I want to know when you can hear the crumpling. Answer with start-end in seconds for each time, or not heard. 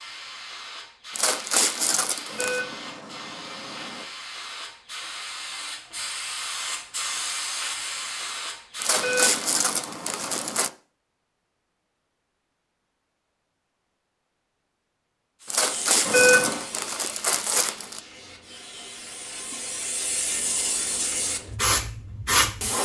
1.1-2.6, 8.8-10.7, 15.4-18.0.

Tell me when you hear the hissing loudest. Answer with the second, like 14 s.
22 s.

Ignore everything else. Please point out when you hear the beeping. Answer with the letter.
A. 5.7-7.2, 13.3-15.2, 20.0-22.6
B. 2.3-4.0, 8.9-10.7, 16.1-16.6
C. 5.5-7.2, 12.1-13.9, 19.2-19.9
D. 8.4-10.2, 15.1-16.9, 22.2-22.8
B.